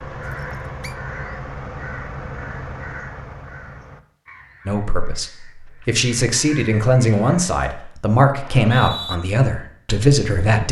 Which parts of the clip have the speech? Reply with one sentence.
The speech can be heard from 4.7 to 10.6 s.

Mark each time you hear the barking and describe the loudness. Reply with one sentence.
You can't hear the barking here.